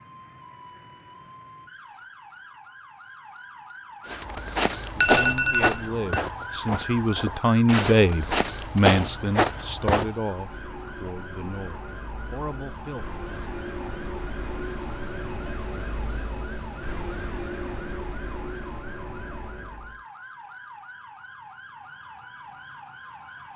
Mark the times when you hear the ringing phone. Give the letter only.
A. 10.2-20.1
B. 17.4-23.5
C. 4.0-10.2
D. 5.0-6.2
D.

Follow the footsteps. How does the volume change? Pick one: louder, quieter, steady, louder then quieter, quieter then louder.
quieter then louder.